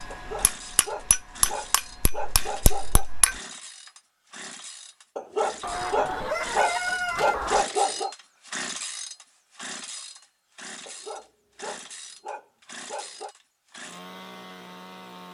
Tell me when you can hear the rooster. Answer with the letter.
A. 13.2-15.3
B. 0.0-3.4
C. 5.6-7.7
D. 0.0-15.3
C.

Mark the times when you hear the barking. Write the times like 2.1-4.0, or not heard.
0.1-3.0, 5.2-8.2, 10.8-13.3.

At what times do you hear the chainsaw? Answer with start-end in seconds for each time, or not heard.
0.0-15.3.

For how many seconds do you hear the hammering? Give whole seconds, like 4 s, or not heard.
3 s.